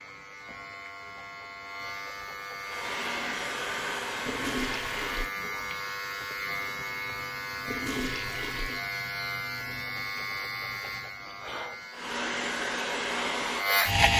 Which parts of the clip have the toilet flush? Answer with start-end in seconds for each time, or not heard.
4.2-5.3, 7.7-8.8.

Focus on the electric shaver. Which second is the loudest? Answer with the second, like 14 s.
14 s.